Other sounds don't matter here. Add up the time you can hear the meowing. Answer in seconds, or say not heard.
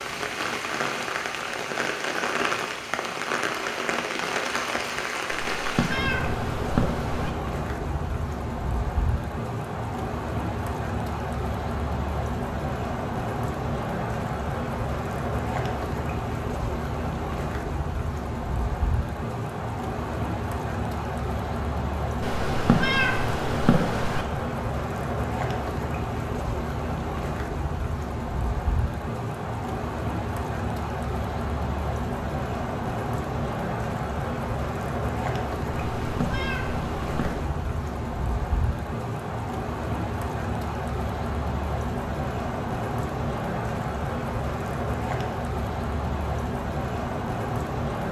6 s.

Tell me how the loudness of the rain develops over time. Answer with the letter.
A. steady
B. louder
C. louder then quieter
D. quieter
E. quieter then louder
A.